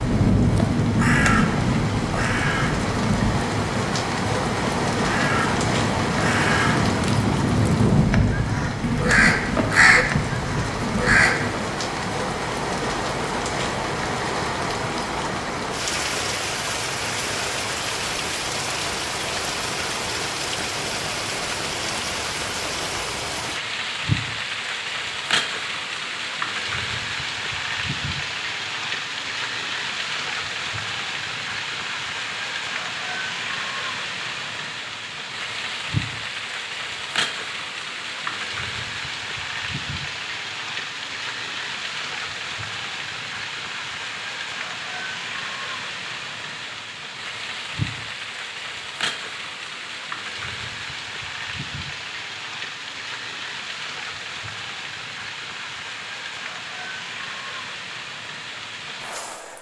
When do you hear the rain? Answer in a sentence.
The rain can be heard from 0.0 to 59.5 s.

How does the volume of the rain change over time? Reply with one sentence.
The loudness of the rain goes down.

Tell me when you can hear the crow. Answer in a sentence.
The crow can be heard from 0.0 to 11.6 s.